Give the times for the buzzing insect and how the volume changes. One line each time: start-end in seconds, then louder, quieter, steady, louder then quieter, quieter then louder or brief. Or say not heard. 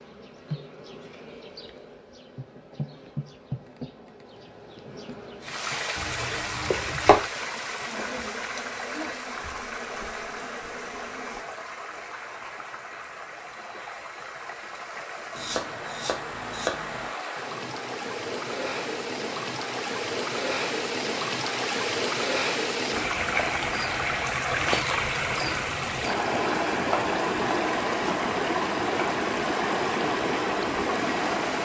0.0-11.4 steady.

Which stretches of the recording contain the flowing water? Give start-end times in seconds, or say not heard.
5.4-31.6.